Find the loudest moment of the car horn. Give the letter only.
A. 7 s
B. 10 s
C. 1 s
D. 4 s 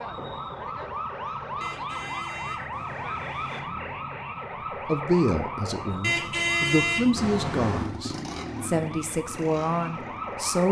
A.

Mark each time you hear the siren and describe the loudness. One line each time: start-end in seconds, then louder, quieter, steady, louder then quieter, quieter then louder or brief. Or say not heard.
0.0-10.6 quieter.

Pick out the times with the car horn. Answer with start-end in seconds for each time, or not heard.
1.6-3.6, 6.0-7.9.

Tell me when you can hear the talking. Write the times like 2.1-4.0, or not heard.
4.8-10.6.